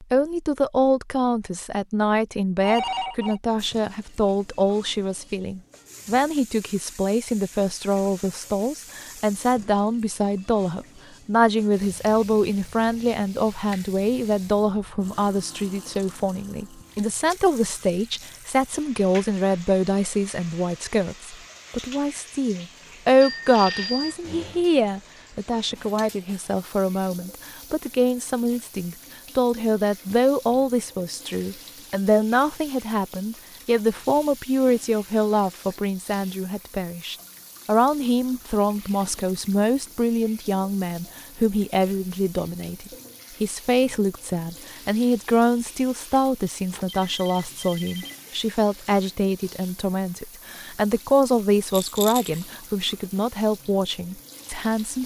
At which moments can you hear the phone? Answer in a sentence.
The phone can be heard from 2.6 to 3.4 s, from 23.2 to 24.1 s and from 46.7 to 48.1 s.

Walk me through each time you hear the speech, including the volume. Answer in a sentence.
You can hear the speech from 0.0 to 55.0 s, at a steady volume.